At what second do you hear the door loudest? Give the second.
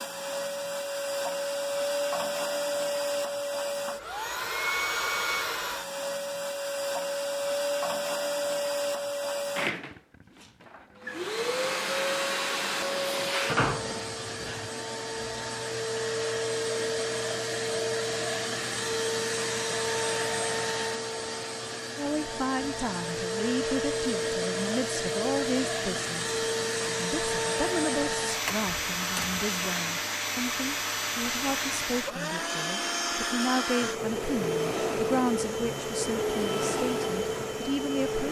14 s.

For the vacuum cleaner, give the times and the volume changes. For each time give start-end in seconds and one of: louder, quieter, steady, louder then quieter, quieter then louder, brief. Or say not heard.
0.0-38.2 steady.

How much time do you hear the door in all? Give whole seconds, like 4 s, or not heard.
2 s.